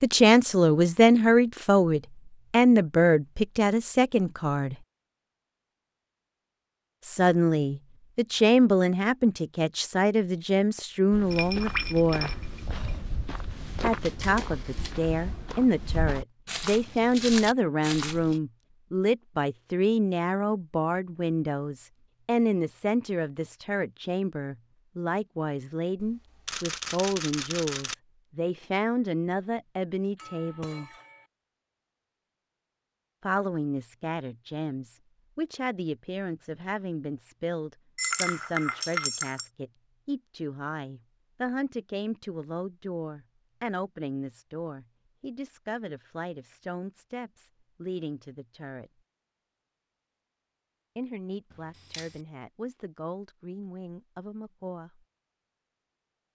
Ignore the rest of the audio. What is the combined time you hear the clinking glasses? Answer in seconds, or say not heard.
4 s.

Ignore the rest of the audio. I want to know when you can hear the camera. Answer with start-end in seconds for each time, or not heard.
14.0-15.0, 26.1-27.9, 51.5-52.2.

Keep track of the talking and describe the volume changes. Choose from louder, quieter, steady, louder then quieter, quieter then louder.
quieter.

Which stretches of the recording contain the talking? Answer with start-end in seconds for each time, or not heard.
0.0-4.8, 7.0-12.3, 13.8-30.9, 33.2-48.9, 51.0-55.0.